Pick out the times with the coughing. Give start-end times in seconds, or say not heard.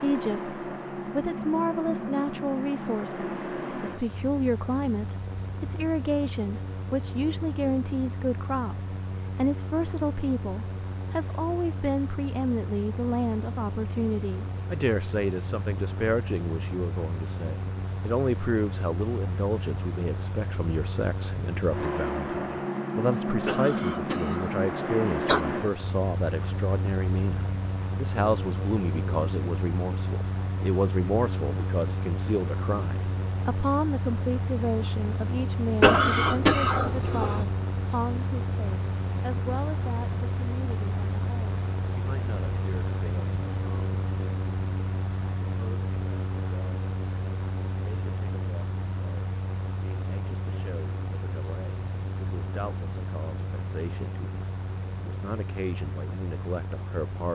23.4-25.4, 35.8-37.5.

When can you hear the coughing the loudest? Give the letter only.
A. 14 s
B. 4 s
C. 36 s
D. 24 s
C.